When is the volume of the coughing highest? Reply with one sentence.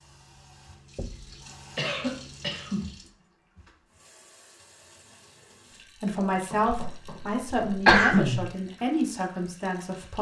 The volume of the coughing peaks at 8 seconds.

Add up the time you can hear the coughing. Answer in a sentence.
The coughing can be heard for 3 seconds in total.